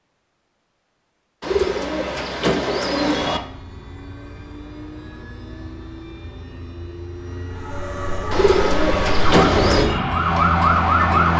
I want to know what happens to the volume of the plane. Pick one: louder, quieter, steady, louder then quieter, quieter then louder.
louder.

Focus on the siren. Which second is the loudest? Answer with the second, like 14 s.
11 s.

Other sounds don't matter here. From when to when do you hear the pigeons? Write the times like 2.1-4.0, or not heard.
1.4-3.4, 8.3-9.8.